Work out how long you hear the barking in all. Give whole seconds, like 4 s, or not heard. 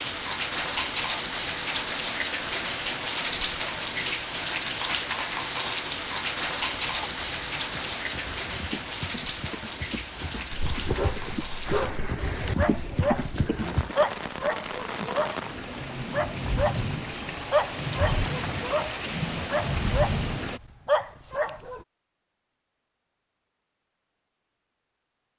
11 s.